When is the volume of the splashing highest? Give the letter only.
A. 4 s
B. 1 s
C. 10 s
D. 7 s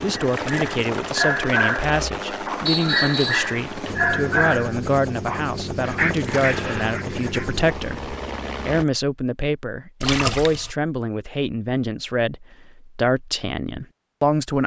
C.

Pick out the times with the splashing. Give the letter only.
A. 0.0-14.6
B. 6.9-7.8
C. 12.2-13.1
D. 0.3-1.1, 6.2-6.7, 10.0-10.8
D.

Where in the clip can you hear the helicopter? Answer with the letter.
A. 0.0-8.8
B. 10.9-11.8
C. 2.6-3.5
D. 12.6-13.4
A.